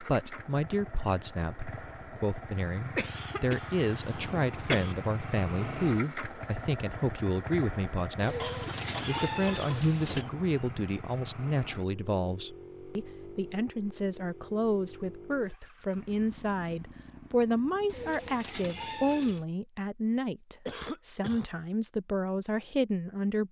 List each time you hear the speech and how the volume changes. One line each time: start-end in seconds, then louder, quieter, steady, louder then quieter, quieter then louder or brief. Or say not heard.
0.0-23.4 steady.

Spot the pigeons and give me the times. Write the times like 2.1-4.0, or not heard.
8.2-10.2, 17.9-19.4.